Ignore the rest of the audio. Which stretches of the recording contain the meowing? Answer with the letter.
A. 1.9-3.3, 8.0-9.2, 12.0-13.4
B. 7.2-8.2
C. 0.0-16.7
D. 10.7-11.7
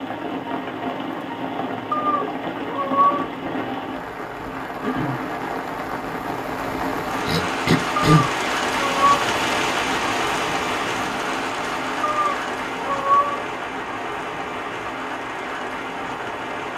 A.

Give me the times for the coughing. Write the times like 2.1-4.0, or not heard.
7.2-8.2.